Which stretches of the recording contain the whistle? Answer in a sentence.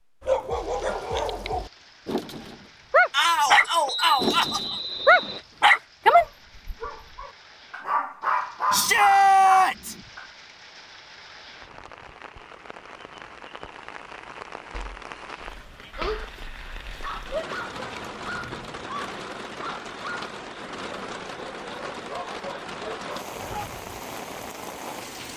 You can hear the whistle from 3.9 to 5.5 s.